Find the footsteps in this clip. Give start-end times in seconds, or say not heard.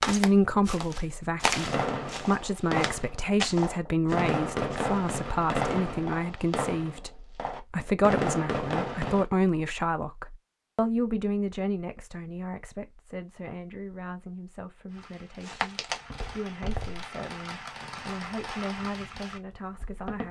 0.0-5.0, 15.4-17.1.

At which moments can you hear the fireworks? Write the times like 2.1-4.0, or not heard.
1.6-9.2, 14.9-20.2.